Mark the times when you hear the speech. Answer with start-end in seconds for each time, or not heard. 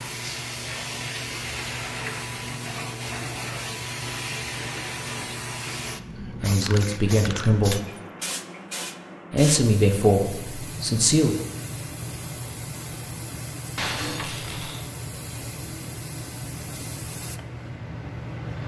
6.4-7.8, 9.3-11.3.